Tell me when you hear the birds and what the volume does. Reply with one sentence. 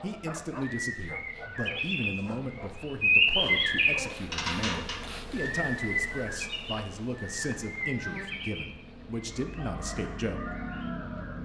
The birds can be heard from 0.0 to 11.4 s, getting louder then quieter.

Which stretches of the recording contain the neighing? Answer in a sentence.
You can't hear the neighing here.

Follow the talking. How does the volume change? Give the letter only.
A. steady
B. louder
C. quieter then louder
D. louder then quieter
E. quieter
A.